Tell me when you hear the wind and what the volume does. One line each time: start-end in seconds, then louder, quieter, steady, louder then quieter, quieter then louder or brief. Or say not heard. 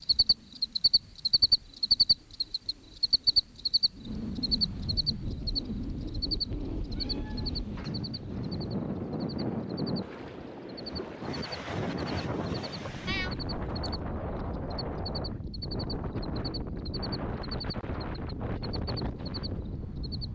0.0-20.3 louder.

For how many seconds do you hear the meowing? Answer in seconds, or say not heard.
3 s.